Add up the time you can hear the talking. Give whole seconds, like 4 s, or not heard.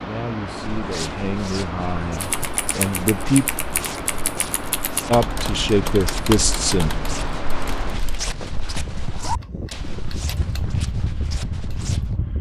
5 s.